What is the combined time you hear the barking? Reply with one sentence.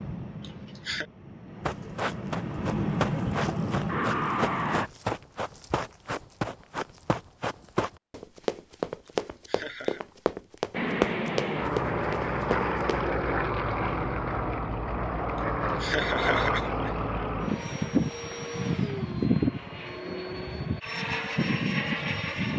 You can't hear the barking here.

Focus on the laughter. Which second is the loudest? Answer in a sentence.
The loudest moment of the laughter is at 16 seconds.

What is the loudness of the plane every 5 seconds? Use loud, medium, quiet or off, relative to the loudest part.
loud, off, loud, loud, loud.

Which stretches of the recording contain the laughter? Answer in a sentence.
You can hear the laughter from 0.4 to 1.1 s, from 9.1 to 10.0 s and from 15.3 to 16.9 s.